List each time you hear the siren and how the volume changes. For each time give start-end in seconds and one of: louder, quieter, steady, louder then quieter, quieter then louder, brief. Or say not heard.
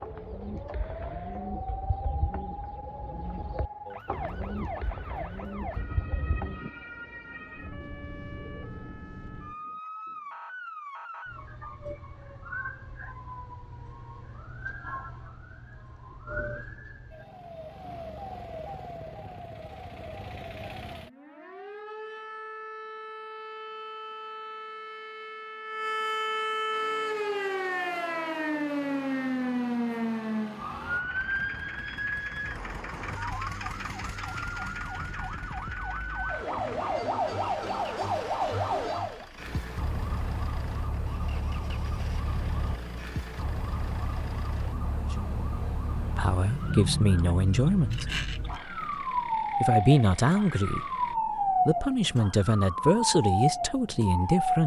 0.0-54.6 louder.